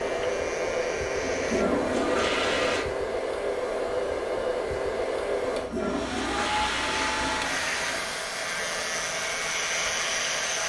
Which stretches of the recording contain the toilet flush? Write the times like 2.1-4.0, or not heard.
1.2-2.9, 5.4-8.2.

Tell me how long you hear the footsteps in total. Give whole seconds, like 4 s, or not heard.
not heard.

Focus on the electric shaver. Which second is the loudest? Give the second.
10 s.